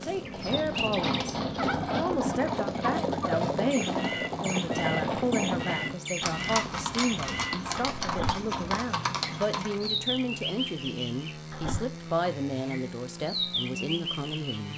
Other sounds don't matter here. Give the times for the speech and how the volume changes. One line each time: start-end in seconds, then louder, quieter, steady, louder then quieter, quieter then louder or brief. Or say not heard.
0.0-1.2 brief
1.9-14.7 steady.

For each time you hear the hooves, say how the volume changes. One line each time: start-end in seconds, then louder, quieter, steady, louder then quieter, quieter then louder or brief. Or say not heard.
0.2-9.9 steady.